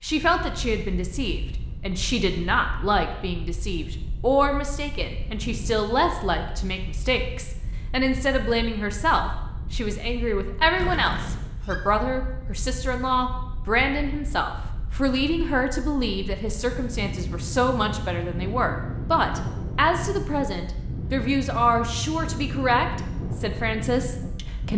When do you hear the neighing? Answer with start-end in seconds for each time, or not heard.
10.8-11.8.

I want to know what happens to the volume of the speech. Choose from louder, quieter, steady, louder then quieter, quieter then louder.
steady.